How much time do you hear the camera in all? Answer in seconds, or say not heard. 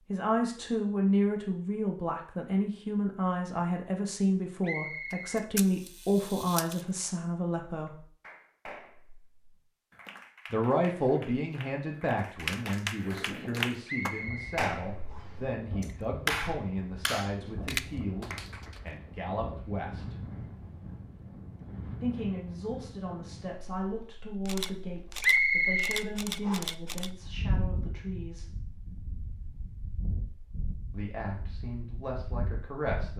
5 s.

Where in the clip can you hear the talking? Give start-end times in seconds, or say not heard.
0.1-8.0, 10.5-20.1, 22.0-28.5, 30.9-33.1.